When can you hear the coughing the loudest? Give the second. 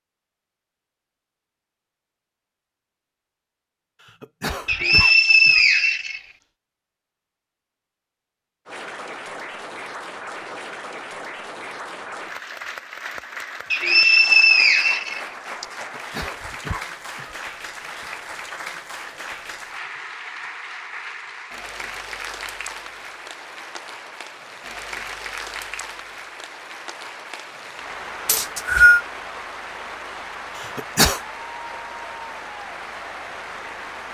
31 s.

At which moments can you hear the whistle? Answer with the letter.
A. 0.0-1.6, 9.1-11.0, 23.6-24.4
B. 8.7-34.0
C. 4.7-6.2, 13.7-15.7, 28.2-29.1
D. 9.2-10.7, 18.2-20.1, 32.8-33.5
C.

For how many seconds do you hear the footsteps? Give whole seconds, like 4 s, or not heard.
not heard.